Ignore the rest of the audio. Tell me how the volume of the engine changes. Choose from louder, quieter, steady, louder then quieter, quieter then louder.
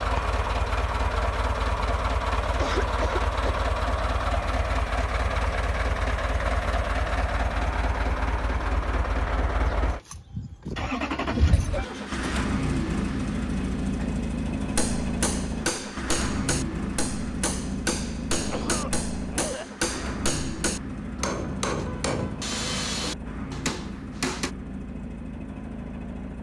quieter.